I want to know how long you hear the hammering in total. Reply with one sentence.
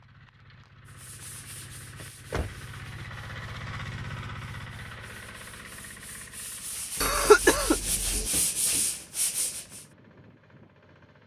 The hammering can't be heard in this clip.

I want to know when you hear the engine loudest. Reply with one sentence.
The volume of the engine peaks at 4 seconds.